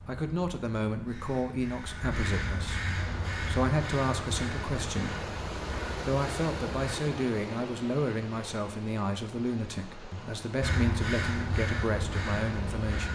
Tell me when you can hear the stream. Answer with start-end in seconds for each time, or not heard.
3.0-13.1.